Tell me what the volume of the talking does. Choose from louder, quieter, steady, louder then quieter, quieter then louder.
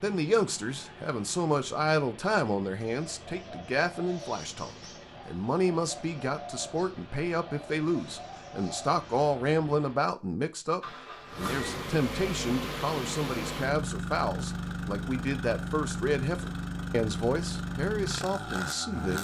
steady.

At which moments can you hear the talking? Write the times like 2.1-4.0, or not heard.
0.0-19.1.